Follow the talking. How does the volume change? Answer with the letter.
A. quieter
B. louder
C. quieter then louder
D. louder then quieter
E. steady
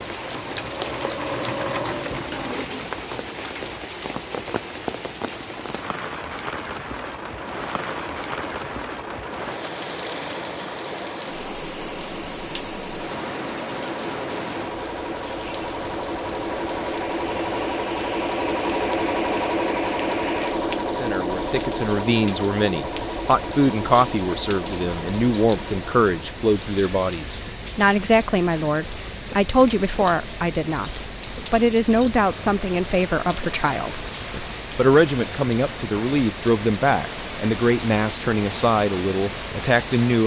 E.